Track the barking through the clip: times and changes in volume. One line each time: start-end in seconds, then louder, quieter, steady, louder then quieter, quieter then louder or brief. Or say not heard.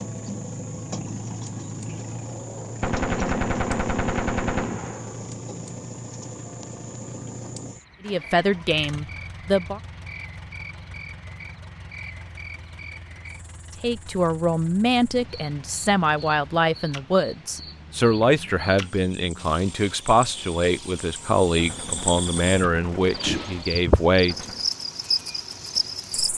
not heard.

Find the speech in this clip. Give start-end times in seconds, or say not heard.
8.1-9.8, 13.8-24.4.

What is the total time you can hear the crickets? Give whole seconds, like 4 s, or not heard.
26 s.